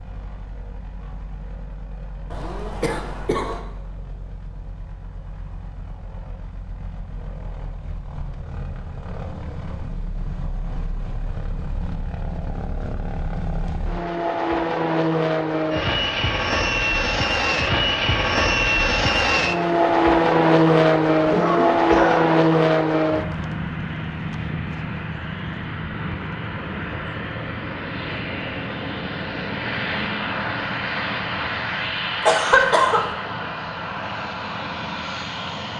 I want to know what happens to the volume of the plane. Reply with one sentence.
The volume of the plane goes up, then down.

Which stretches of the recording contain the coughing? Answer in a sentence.
The coughing can be heard from 2.3 to 3.6 s, from 21.3 to 22.2 s and from 32.2 to 33.0 s.